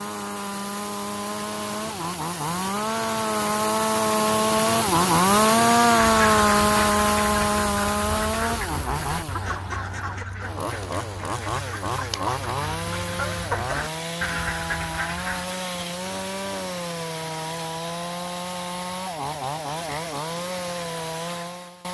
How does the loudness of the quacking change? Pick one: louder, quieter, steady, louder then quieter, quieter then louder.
quieter then louder.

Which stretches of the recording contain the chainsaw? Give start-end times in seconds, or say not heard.
0.0-21.8.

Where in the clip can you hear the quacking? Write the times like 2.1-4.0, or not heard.
6.1-15.5.